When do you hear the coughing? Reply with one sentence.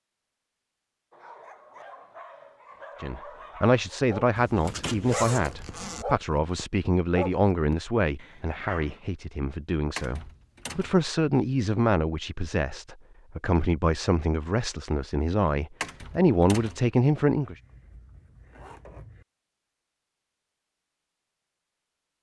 You can't hear the coughing here.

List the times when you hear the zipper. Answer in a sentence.
The zipper can be heard from 4.3 to 6.0 s and from 17.4 to 19.2 s.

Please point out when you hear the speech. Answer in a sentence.
You can hear the speech from 3.0 to 17.6 s.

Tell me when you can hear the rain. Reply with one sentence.
The rain can't be heard in this clip.